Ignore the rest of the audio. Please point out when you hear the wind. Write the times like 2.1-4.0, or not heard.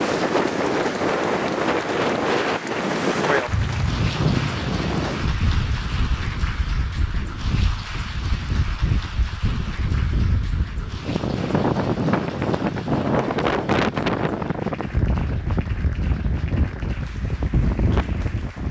0.0-18.6.